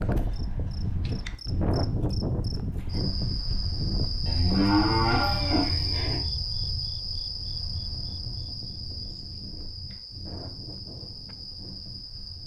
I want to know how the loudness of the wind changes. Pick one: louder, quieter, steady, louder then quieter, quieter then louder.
quieter.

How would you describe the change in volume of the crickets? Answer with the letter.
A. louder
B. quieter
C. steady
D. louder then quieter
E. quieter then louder
D.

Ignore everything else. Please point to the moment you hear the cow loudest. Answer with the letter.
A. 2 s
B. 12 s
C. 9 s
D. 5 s
D.